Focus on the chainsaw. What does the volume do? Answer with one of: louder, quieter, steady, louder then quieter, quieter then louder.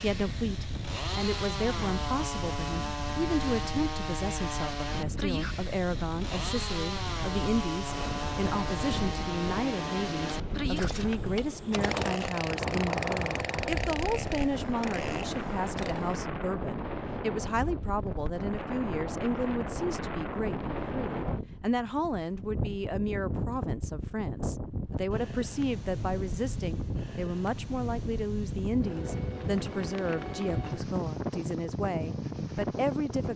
steady.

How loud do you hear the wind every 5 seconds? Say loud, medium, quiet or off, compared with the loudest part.
medium, medium, loud, loud, loud, loud, loud.